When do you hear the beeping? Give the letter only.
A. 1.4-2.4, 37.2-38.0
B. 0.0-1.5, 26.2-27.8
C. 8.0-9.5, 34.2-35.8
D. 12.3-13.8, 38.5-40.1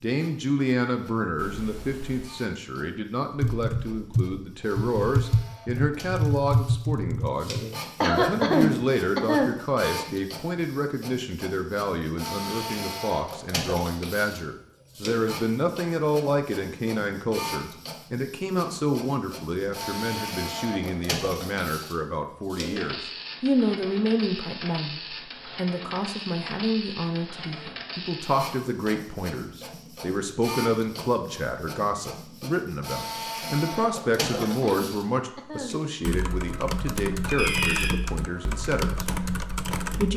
A.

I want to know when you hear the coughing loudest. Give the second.
9 s.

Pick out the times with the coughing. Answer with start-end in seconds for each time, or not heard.
8.0-9.5, 34.2-35.8.